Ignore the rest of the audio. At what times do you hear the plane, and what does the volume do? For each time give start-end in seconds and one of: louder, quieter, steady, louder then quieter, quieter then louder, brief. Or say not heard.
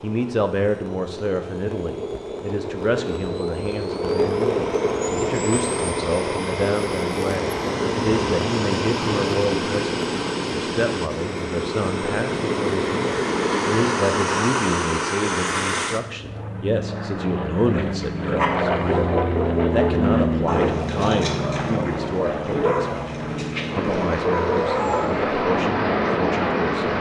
0.0-26.9 steady.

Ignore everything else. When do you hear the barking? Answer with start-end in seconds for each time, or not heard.
17.7-25.2.